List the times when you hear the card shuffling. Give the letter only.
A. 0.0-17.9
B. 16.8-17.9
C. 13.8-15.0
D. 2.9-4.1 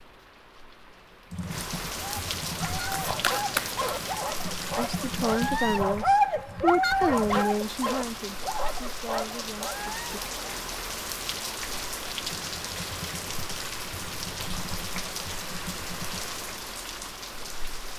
D.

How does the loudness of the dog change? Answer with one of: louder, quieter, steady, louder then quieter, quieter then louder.
louder then quieter.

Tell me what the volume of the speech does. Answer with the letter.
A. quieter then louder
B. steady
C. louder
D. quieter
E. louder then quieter
D.